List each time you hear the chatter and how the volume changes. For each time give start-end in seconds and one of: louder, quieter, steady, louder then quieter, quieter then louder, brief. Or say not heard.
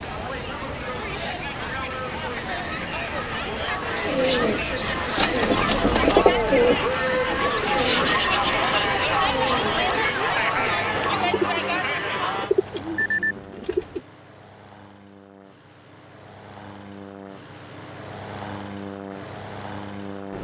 0.0-12.5 louder.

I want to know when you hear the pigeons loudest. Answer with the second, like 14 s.
6 s.